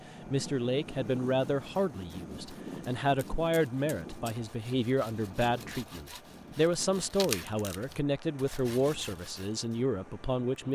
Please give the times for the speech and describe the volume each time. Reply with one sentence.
The speech can be heard from 0.2 to 10.6 s, at a steady volume.